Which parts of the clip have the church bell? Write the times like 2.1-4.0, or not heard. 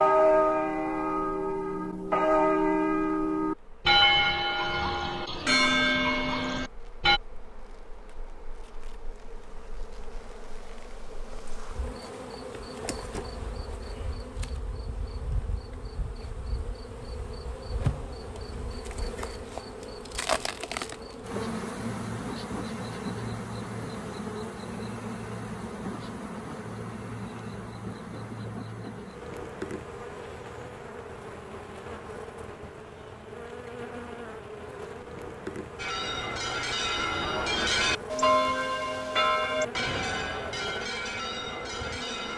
0.0-7.2, 35.8-42.3.